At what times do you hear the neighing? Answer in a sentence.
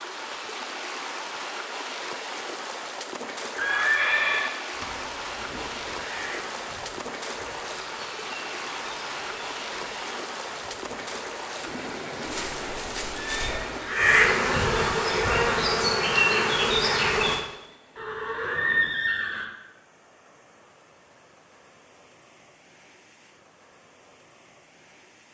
The neighing can be heard from 3.5 to 4.5 s, from 12.2 to 13.7 s and from 17.9 to 19.5 s.